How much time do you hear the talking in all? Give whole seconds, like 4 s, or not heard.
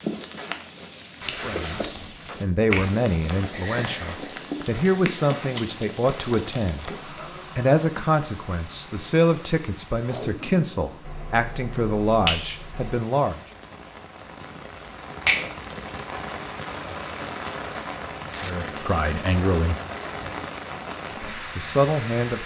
14 s.